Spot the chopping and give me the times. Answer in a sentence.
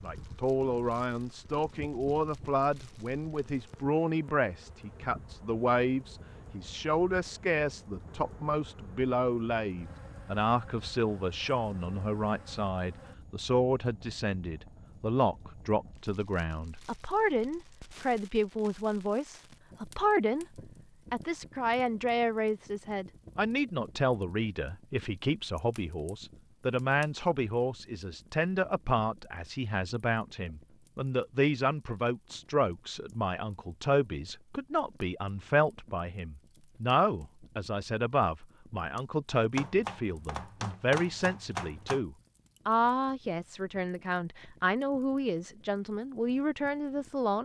The chopping can be heard from 39.5 to 42.0 s.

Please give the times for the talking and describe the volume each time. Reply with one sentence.
You can hear the talking from 0.0 to 47.4 s, at a steady volume.